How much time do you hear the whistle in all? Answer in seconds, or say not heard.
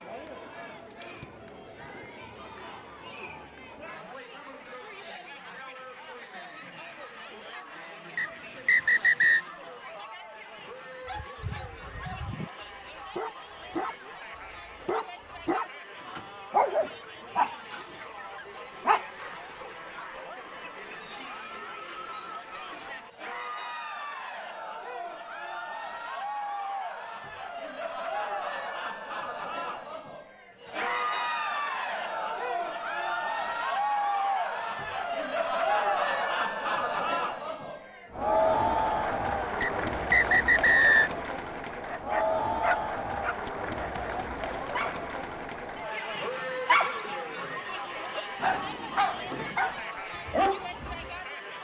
3 s.